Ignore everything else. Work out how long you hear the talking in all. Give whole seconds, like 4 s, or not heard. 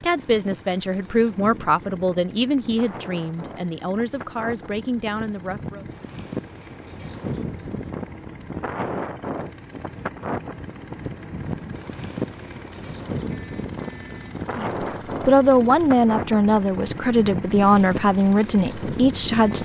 11 s.